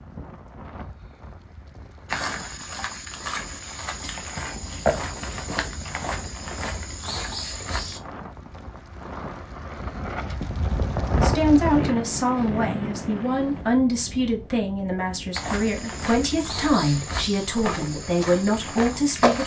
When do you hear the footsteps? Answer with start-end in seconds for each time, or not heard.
2.0-8.0, 15.3-19.4.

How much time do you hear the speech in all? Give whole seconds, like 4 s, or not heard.
8 s.